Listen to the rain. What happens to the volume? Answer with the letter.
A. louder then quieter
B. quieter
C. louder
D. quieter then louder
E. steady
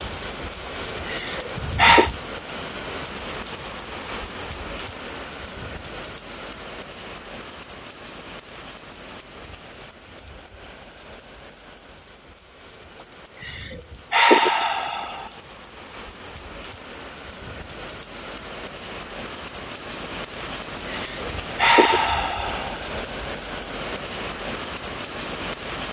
D.